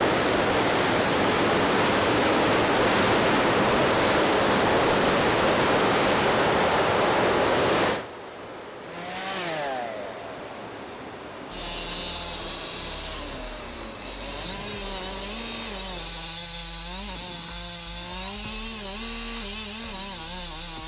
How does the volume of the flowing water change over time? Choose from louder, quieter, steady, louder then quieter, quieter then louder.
quieter.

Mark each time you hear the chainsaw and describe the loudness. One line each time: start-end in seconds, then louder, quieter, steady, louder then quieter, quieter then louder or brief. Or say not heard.
8.8-20.8 steady.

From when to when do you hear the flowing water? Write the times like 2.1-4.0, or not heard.
0.0-16.4.